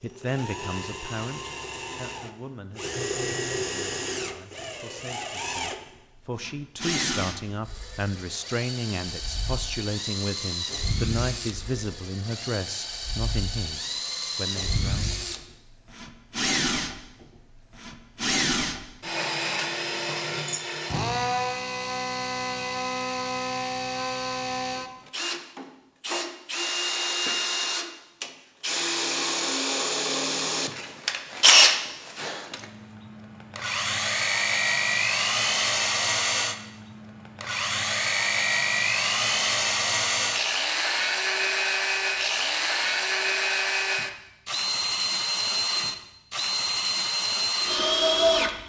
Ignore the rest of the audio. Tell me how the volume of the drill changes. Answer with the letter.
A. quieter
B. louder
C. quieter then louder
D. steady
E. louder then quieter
B.